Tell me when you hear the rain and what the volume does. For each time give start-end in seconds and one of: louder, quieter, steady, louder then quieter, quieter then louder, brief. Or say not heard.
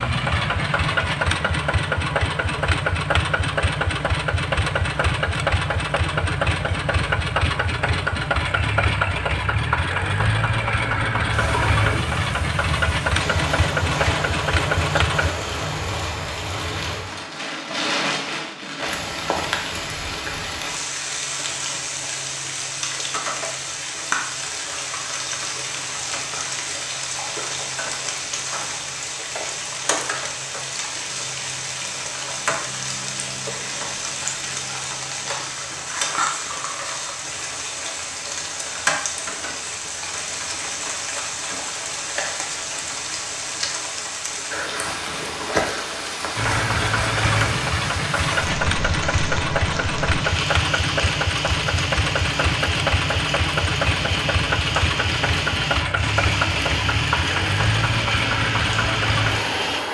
11.3-59.8 steady.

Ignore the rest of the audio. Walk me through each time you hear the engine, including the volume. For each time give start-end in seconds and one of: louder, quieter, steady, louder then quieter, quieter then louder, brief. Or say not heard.
0.0-15.3 steady
46.4-59.8 steady.